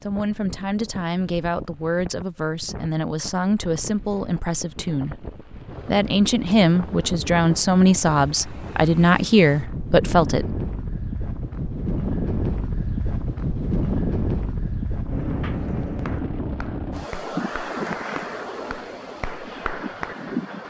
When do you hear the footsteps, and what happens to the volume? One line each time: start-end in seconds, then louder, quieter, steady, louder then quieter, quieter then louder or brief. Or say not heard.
not heard.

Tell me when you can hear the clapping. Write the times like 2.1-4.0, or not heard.
15.4-20.4.